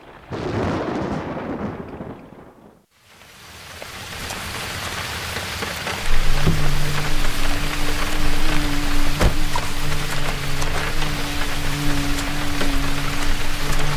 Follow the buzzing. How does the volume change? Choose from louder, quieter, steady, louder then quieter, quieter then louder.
steady.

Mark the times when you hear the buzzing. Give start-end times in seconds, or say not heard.
6.0-13.9.